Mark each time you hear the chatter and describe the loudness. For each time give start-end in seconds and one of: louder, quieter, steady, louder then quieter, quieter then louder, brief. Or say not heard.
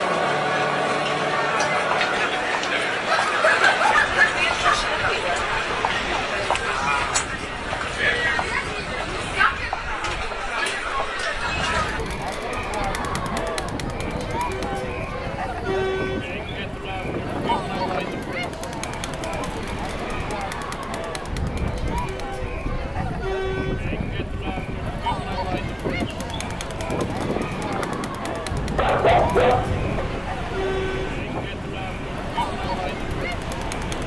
0.0-34.0 quieter.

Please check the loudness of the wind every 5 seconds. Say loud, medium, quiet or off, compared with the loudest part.
medium, medium, medium, loud, loud, loud, loud.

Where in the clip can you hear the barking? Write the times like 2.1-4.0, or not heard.
3.0-4.9, 28.5-30.1.